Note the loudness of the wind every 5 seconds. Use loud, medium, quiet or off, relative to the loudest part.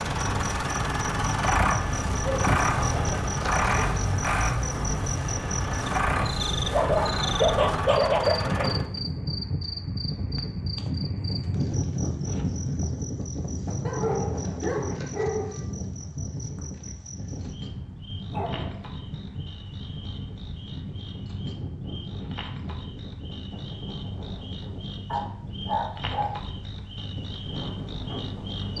loud, loud, loud, medium, medium, medium.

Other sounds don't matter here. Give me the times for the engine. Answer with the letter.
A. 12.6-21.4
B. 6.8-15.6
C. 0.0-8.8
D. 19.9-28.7
C.